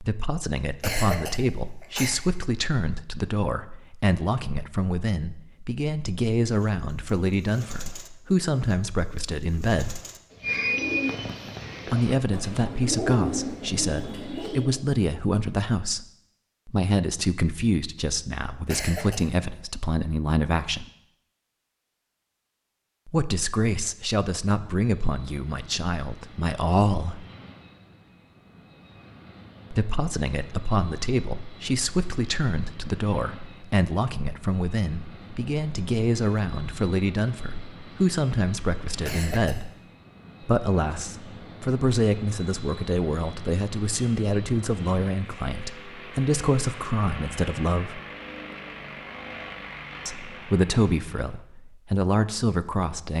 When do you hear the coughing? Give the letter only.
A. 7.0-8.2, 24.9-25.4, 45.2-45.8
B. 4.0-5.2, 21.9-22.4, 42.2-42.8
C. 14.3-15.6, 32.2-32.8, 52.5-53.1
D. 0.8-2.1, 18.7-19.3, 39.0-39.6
D.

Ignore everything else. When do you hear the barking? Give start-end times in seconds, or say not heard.
not heard.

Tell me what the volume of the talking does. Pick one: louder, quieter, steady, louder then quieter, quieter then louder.
steady.